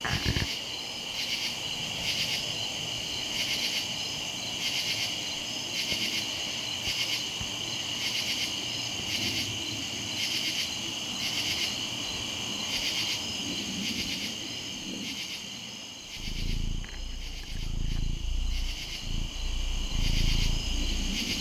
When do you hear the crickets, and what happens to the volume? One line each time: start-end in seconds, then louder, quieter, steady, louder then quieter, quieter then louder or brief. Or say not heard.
0.0-21.3 quieter.